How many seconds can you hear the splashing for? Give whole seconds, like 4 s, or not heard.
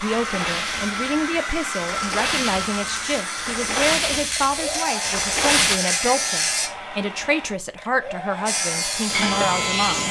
6 s.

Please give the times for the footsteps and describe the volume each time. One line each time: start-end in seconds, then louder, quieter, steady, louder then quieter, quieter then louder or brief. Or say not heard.
not heard.